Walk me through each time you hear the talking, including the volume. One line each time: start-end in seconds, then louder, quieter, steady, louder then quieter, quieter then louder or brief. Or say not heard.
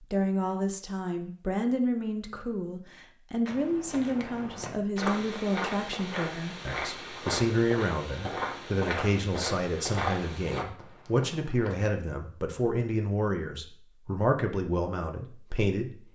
0.1-16.0 steady.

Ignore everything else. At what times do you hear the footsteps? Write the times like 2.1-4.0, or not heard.
3.5-11.9.